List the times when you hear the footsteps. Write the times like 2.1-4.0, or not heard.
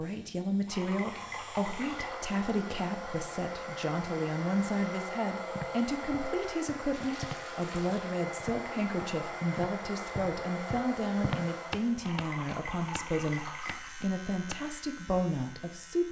5.5-14.6.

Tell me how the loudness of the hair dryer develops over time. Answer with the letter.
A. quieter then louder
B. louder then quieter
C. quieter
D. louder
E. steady
E.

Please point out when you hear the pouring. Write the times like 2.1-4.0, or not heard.
0.7-2.2, 6.9-8.2, 12.0-13.9.